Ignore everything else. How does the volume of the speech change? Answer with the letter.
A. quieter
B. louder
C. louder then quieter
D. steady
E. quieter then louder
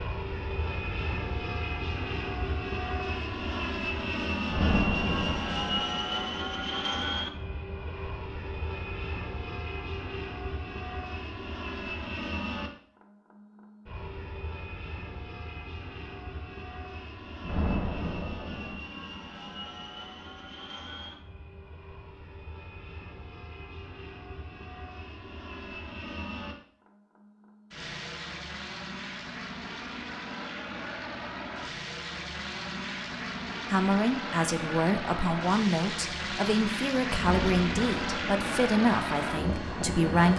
D.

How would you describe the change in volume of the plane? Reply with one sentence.
The loudness of the plane goes down, then up.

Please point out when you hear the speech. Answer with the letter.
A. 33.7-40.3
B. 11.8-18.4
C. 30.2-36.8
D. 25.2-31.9
A.